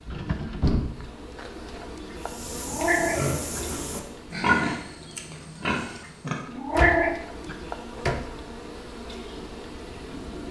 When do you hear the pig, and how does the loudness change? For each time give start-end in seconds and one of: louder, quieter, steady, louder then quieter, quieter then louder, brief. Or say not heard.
2.2-6.5 louder then quieter.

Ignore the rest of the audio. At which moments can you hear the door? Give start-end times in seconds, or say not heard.
0.1-1.1, 6.8-8.2.